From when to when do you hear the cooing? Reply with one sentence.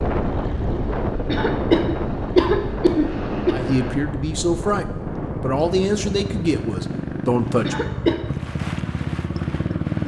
You can't hear the cooing here.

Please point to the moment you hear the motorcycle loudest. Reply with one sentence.
The loudest moment of the motorcycle is at 10 seconds.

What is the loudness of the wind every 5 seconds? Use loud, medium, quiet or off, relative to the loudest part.
loud, medium.